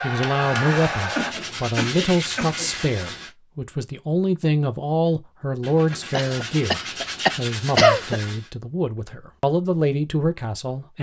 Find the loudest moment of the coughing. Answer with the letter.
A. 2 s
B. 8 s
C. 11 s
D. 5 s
B.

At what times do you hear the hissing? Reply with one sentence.
The hissing can be heard from 0.0 to 2.9 s.